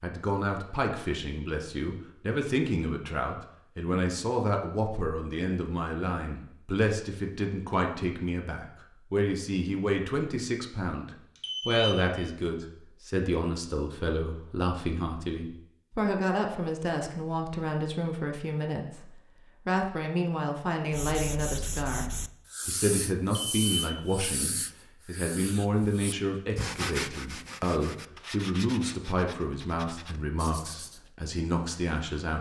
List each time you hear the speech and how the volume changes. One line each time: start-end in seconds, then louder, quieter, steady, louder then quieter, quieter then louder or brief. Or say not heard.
0.0-32.3 steady.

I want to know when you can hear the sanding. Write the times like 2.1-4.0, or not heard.
20.9-31.1.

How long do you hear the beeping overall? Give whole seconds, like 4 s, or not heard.
2 s.